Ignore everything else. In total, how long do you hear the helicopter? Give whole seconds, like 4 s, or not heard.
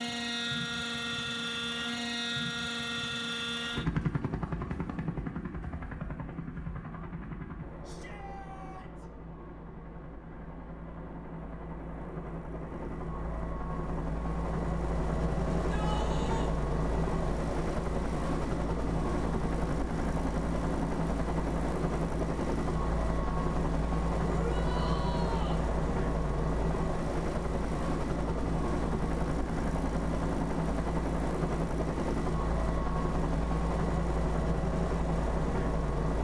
36 s.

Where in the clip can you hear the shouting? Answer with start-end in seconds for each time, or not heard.
7.8-9.1, 15.5-16.6, 24.2-25.6.